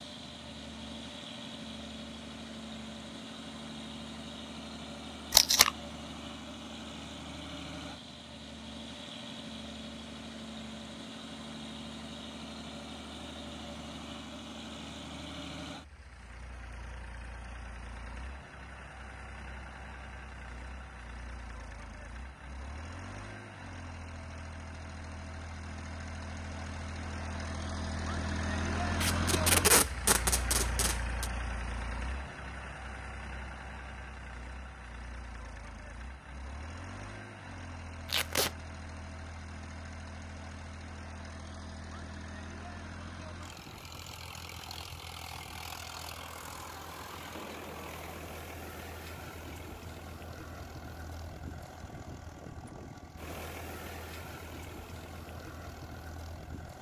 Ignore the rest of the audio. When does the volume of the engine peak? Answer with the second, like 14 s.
29 s.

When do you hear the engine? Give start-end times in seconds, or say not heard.
0.0-56.7.